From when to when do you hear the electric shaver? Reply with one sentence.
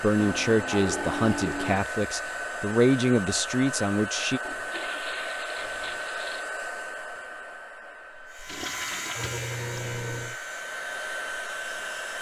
The electric shaver can be heard from 8.2 to 12.1 s.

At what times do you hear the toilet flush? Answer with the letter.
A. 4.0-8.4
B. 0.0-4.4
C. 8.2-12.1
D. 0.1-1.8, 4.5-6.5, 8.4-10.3
D.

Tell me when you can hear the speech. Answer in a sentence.
You can hear the speech from 0.0 to 4.4 s.